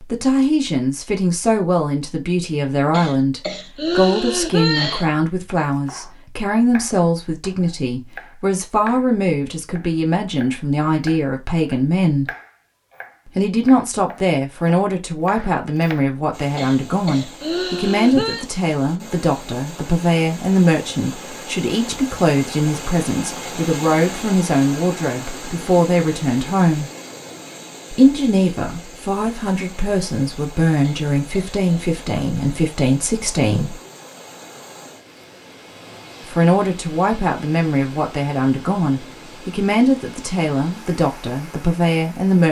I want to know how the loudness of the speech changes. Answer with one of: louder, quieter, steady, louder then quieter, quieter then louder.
steady.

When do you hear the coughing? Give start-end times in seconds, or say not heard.
2.9-5.1, 16.6-18.4, 30.8-31.9.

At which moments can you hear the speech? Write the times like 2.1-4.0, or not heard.
0.0-12.3, 13.2-26.9, 27.9-33.8, 36.2-42.4.